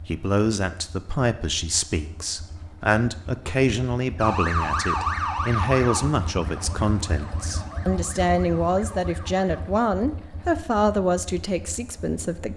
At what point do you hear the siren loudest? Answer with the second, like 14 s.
5 s.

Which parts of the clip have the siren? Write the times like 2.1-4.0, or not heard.
4.2-9.6.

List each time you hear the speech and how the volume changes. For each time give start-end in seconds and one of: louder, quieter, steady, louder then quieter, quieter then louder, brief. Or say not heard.
0.1-12.5 steady.